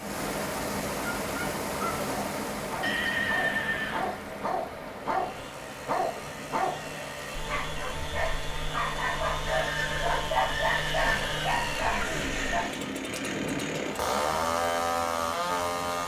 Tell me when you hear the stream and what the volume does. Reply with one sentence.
You can hear the stream from 0.0 to 16.0 s, getting quieter.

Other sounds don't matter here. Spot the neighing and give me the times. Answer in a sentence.
The neighing can be heard from 2.8 to 4.2 s and from 9.4 to 11.5 s.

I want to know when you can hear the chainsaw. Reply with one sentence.
The chainsaw can be heard from 0.0 to 16.0 s.